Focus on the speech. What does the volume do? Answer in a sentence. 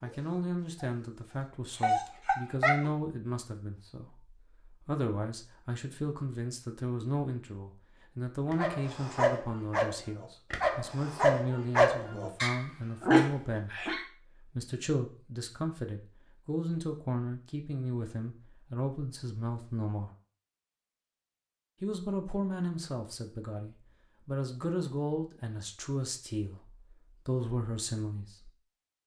The volume of the speech stays about the same.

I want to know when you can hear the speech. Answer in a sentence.
The speech can be heard from 0.0 to 20.1 s and from 21.8 to 28.5 s.